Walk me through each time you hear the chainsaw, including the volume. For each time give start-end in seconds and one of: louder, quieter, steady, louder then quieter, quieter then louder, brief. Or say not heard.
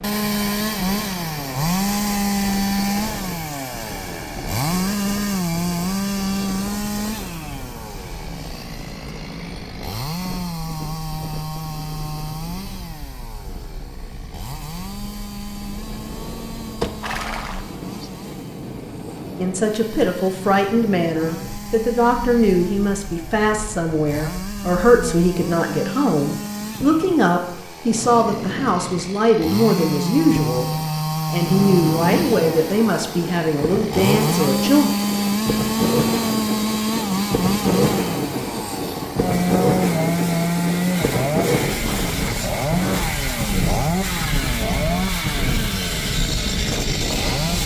0.0-47.6 quieter then louder.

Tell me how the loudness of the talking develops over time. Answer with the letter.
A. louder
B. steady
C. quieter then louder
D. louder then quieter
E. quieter
B.